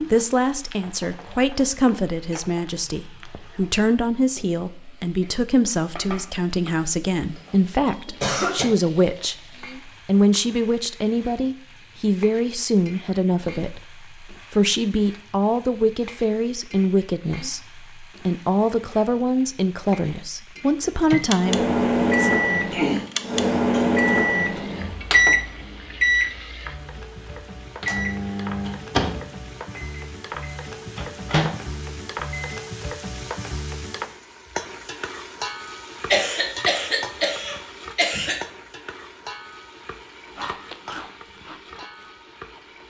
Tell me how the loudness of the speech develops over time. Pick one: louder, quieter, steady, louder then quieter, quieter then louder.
steady.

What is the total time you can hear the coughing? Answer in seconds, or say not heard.
5 s.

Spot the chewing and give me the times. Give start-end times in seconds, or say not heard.
40.3-42.7.